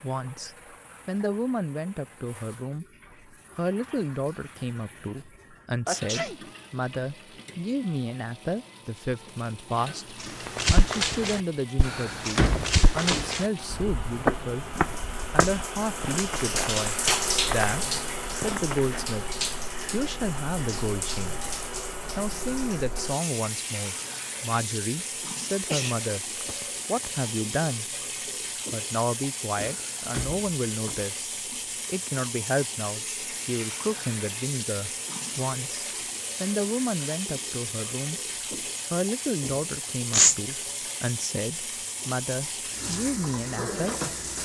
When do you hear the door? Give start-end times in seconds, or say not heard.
11.8-13.3, 29.6-31.1.